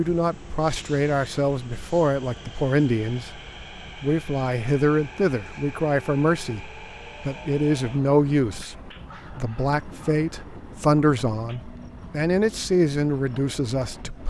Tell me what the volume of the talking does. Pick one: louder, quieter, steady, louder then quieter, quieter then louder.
steady.